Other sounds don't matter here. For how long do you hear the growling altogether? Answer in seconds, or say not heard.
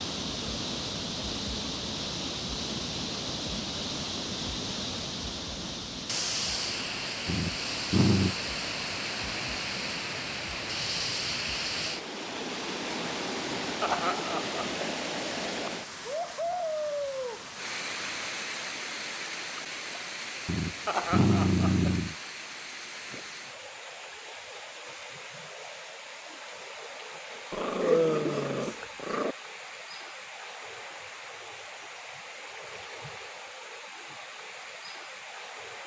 5 s.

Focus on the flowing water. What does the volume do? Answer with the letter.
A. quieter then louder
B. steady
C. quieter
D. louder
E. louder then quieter
C.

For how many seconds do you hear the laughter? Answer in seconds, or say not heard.
2 s.